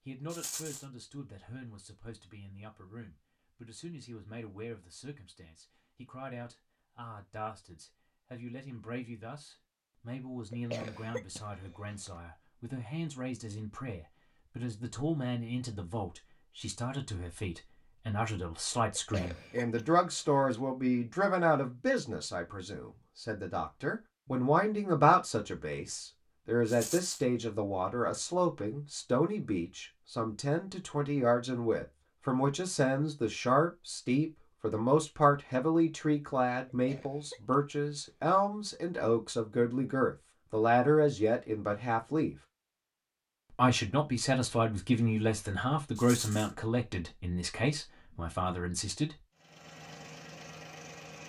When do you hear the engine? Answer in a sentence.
The engine can be heard from 49.4 to 51.2 s.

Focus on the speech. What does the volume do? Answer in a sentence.
The volume of the speech goes up.